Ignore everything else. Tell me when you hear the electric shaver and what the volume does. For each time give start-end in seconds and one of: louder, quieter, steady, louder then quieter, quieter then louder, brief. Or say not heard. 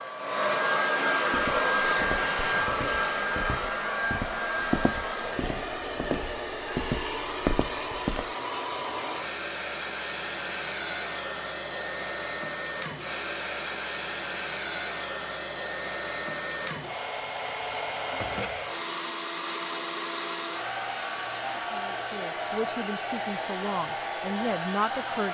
not heard.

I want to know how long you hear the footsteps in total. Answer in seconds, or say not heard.
7 s.